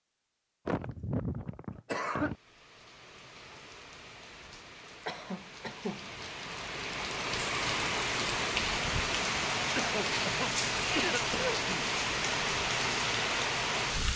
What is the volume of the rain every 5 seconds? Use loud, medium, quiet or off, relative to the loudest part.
quiet, loud, loud.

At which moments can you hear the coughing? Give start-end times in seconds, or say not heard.
0.7-2.4, 5.0-6.0, 9.8-11.8.